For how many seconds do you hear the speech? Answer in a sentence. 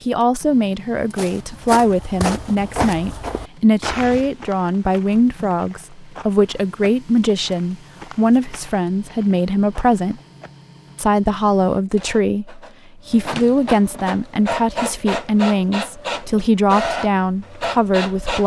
The speech can be heard for 18 seconds in total.